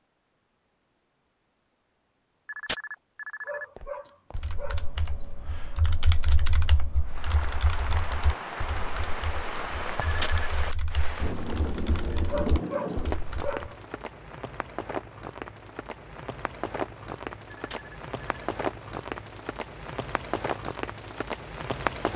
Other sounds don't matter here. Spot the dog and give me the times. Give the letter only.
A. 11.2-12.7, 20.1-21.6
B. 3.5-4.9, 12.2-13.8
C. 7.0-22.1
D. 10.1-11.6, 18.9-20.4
B.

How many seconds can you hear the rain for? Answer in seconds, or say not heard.
15 s.